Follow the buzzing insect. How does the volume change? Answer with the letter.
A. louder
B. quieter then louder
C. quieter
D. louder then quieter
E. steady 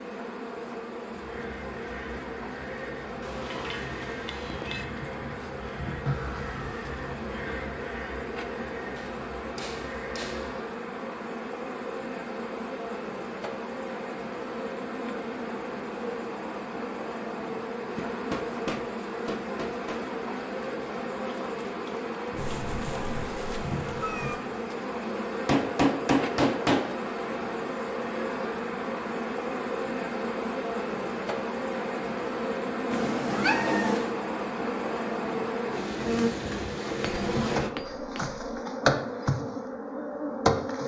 A.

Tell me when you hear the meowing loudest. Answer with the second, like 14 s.
34 s.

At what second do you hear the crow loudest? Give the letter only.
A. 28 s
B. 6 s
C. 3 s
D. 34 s
B.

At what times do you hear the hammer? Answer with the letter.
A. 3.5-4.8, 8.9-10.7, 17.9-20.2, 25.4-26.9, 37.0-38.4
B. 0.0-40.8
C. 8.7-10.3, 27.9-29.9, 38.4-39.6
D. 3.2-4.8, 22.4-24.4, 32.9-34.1
A.